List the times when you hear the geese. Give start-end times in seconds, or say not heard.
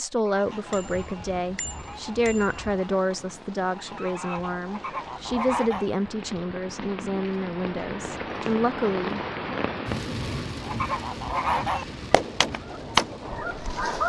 0.0-5.9, 10.6-14.0.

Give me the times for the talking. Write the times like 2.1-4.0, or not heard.
0.0-9.2.